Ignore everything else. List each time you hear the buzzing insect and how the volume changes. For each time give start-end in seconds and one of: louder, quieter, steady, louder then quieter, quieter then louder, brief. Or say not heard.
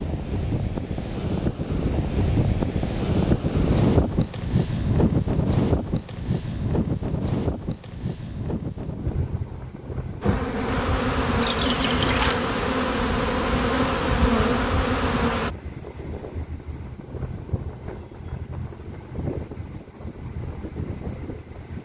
10.2-15.6 steady.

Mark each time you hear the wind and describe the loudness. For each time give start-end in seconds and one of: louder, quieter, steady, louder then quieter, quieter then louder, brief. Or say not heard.
0.0-21.8 quieter.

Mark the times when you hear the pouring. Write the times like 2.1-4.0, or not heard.
11.4-12.4.